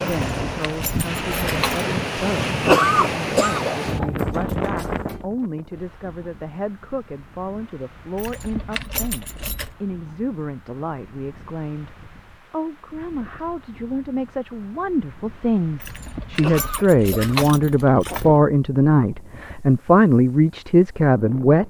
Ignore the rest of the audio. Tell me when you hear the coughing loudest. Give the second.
3 s.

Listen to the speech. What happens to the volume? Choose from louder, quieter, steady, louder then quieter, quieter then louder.
louder.